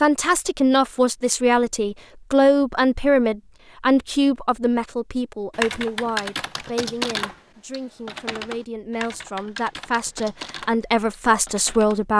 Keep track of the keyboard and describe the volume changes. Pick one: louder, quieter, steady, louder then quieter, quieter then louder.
quieter.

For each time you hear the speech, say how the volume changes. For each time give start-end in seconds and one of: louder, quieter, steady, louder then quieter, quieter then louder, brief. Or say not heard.
0.0-12.1 quieter then louder.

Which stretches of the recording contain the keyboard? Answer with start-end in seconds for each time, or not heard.
5.5-12.1.